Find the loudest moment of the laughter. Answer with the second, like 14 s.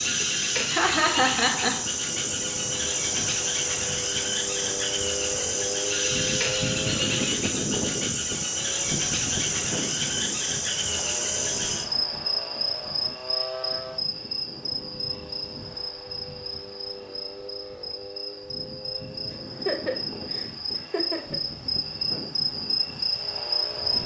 1 s.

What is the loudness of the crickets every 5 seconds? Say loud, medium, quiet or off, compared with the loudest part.
loud, loud, loud, medium, loud.